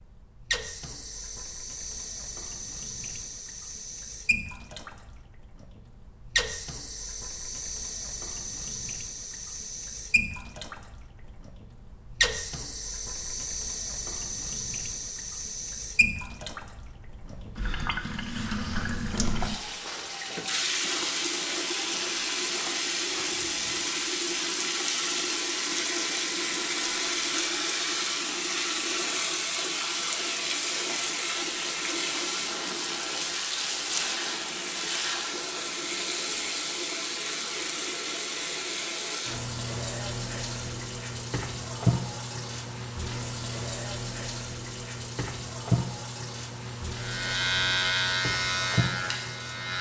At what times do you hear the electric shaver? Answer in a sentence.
You can hear the electric shaver from 47.0 to 49.7 s.